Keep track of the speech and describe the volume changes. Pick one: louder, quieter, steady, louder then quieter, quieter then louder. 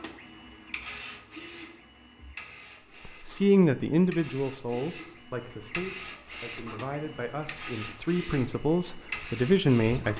quieter then louder.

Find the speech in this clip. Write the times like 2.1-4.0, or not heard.
3.0-10.1.